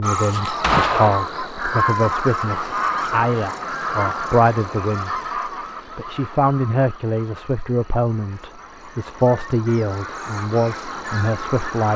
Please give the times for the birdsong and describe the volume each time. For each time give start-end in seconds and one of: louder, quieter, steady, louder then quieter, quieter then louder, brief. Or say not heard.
0.0-11.9 quieter then louder.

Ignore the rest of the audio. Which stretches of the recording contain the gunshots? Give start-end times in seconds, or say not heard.
0.6-1.2.